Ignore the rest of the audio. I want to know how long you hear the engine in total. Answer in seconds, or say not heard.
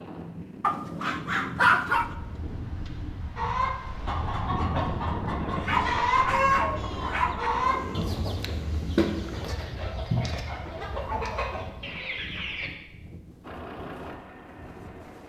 2 s.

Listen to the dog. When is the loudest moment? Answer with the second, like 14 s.
2 s.